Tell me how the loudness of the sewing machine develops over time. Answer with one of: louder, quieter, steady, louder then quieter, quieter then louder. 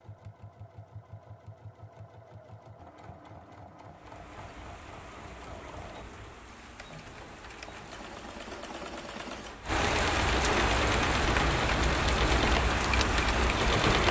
louder.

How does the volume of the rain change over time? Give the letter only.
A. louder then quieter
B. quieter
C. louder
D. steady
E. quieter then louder
C.